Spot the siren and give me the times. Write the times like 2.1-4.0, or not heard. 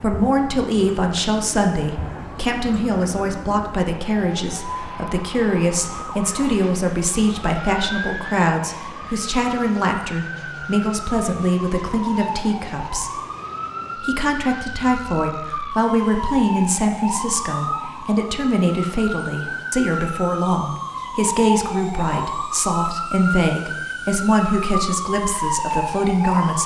0.0-26.6.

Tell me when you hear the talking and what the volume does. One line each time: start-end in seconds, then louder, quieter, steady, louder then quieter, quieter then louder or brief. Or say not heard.
0.0-13.1 steady
13.9-26.6 steady.